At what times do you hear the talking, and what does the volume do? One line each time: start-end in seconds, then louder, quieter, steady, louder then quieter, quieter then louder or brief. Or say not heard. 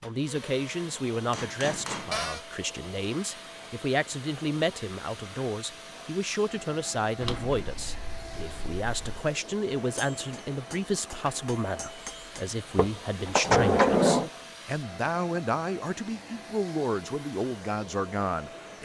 0.0-18.7 steady.